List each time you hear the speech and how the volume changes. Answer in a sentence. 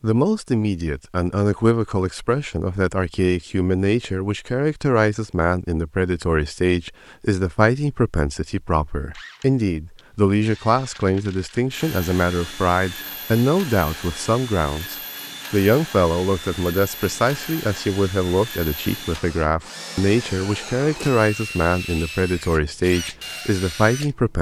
You can hear the speech from 0.0 to 24.3 s, at a steady volume.